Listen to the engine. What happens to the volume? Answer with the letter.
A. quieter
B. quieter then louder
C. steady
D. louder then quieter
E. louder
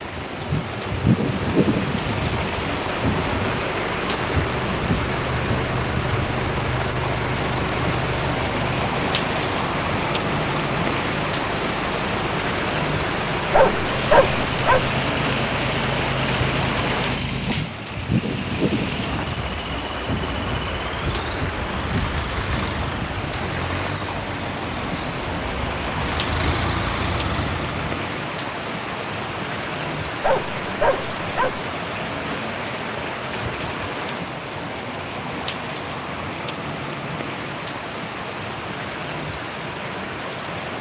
C.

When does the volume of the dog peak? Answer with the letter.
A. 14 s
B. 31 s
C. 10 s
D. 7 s
A.